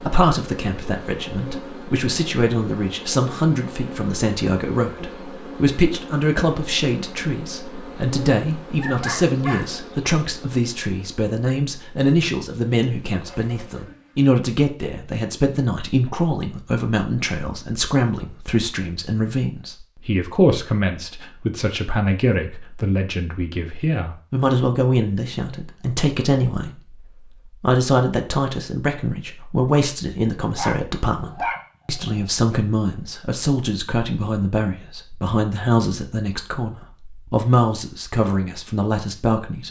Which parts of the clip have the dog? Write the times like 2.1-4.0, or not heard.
8.8-9.7, 30.4-32.2.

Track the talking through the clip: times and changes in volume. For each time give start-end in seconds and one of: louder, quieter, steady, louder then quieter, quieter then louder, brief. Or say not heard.
0.0-39.6 steady.